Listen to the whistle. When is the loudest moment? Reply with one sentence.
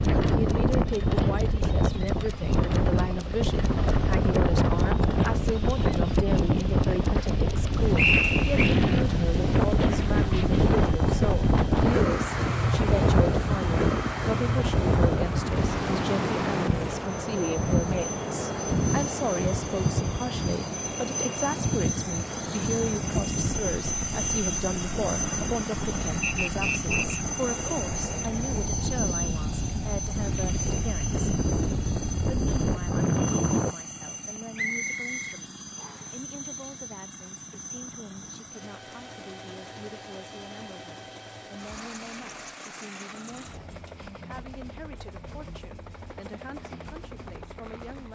The loudest moment of the whistle is at 8 seconds.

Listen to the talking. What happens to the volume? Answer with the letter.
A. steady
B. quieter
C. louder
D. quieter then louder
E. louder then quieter
B.